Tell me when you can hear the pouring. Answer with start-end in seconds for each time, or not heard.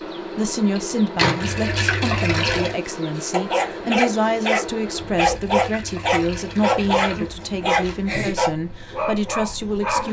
1.4-2.8, 5.2-7.2.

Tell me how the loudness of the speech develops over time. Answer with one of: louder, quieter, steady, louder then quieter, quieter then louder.
steady.